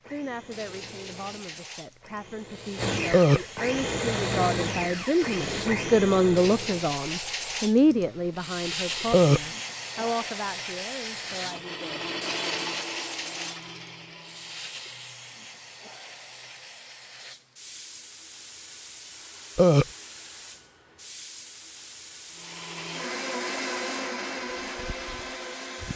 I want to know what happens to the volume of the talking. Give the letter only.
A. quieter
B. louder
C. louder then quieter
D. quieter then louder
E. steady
C.